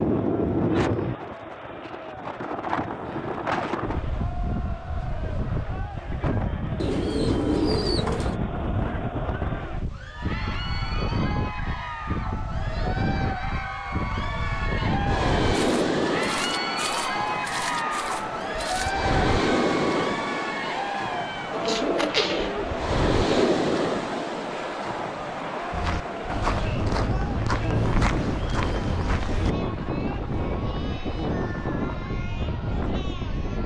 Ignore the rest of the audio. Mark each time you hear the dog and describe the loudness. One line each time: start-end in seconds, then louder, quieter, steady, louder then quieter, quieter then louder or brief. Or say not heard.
not heard.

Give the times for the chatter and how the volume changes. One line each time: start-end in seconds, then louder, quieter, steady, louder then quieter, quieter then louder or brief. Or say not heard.
0.0-33.6 louder then quieter.